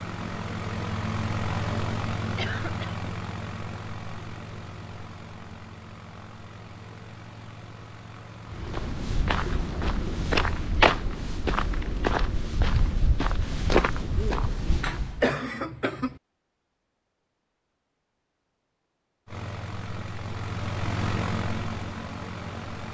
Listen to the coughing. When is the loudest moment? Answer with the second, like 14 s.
15 s.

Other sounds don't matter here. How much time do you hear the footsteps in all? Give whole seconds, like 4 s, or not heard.
7 s.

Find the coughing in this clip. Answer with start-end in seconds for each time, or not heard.
2.4-3.0, 14.3-16.2.